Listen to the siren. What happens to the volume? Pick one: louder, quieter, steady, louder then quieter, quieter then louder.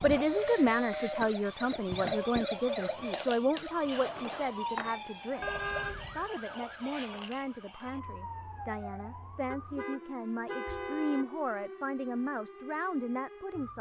quieter.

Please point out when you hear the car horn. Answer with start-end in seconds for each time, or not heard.
0.0-0.8, 5.4-6.3, 9.5-11.3.